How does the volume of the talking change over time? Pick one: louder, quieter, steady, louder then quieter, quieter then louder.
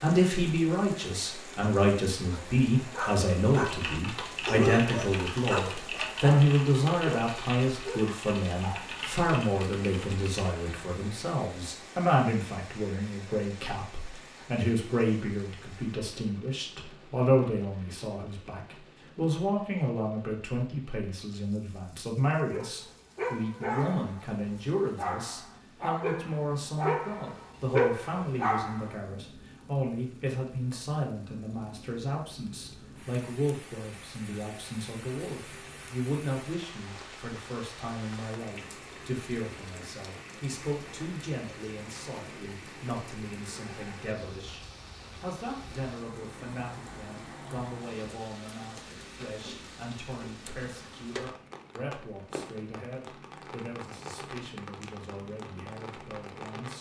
quieter.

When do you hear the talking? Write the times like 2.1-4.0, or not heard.
0.0-56.7.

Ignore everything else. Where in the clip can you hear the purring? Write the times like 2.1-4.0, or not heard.
not heard.